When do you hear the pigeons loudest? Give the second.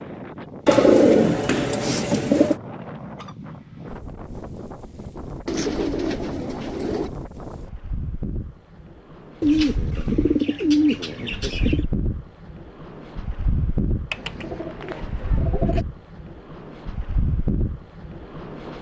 1 s.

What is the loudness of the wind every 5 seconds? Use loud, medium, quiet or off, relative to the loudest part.
medium, medium, loud, loud.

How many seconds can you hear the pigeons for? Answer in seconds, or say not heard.
8 s.